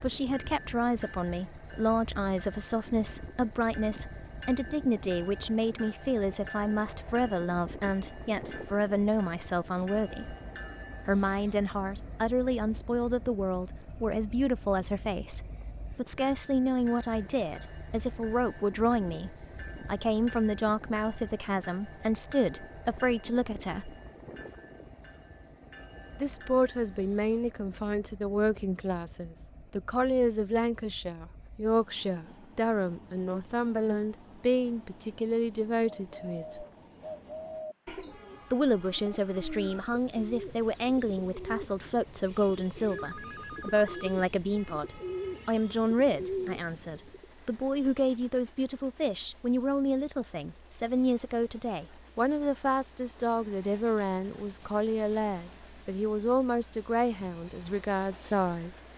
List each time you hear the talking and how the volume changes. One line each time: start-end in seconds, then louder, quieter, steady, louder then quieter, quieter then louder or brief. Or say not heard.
0.0-10.3 steady
11.1-23.9 steady
26.2-36.6 steady
38.5-58.8 steady.